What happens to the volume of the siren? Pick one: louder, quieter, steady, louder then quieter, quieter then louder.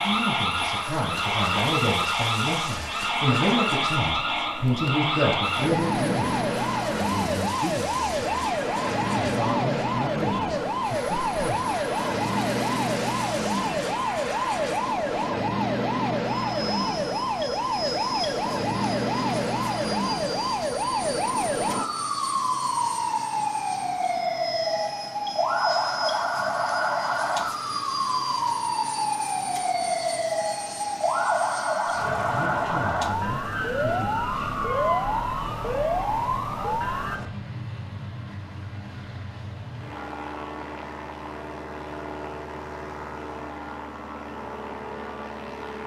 steady.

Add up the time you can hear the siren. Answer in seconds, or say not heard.
37 s.